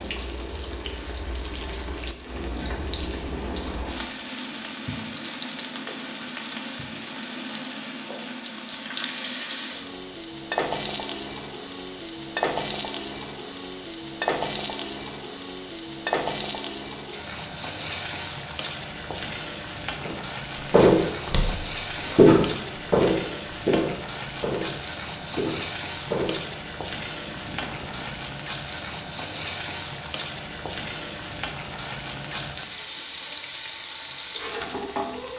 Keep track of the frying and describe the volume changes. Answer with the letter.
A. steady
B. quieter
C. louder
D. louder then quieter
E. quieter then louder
A.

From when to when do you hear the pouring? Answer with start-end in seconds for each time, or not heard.
2.4-3.6, 27.2-28.2.